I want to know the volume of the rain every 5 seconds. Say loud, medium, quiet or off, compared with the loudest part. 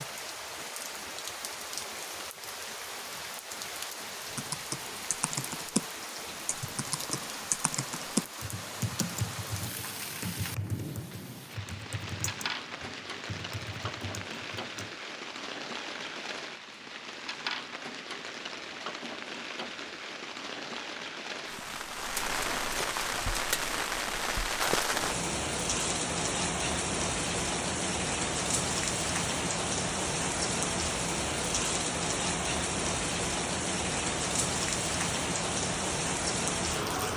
medium, medium, medium, medium, loud, loud, loud, loud.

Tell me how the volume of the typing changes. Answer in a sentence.
The volume of the typing goes down.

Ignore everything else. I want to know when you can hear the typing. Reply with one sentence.
The typing can be heard from 4.3 to 14.9 s.